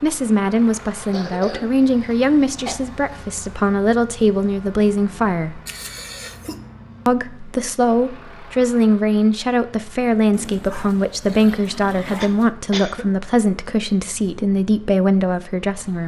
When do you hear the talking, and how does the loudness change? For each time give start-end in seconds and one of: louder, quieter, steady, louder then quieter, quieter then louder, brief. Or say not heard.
0.0-5.6 steady
7.0-16.0 steady.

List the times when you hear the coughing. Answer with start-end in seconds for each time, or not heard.
1.0-2.8, 5.7-6.5, 12.2-13.1.